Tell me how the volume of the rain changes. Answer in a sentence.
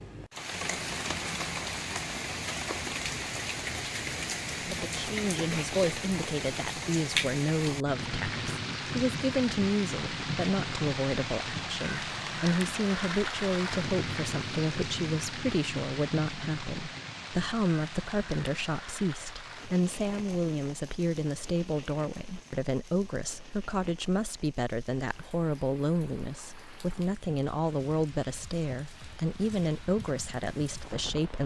The volume of the rain goes down.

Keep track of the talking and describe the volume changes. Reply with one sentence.
The volume of the talking stays about the same.